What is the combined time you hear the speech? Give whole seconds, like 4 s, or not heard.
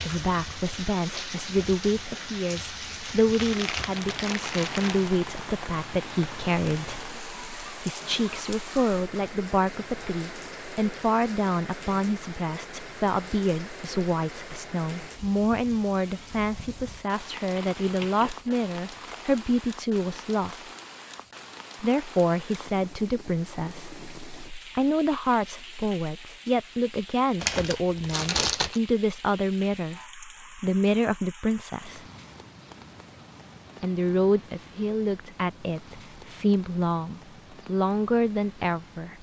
36 s.